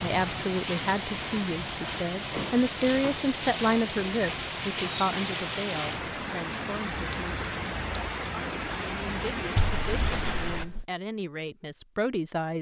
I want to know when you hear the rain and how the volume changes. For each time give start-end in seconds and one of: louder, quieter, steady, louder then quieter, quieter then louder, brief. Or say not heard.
0.0-10.7 steady.